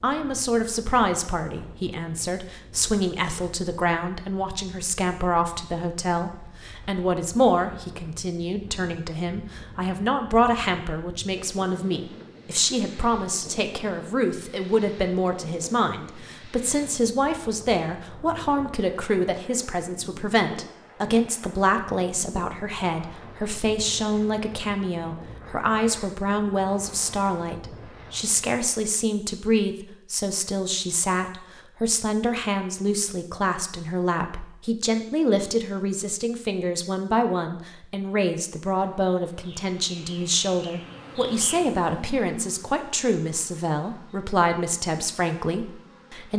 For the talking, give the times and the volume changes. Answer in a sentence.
You can hear the talking from 0.0 to 46.3 s, at a steady volume.